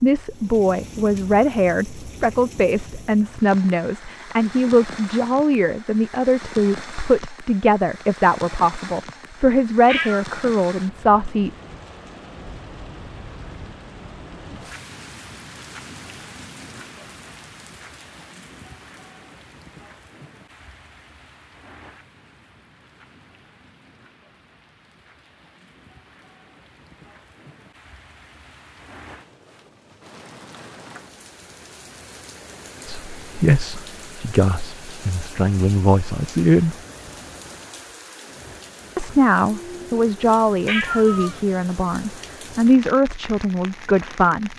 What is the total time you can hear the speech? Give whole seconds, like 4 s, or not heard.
21 s.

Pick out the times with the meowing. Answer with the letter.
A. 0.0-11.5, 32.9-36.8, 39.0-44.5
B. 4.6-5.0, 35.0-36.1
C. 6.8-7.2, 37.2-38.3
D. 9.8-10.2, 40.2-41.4
D.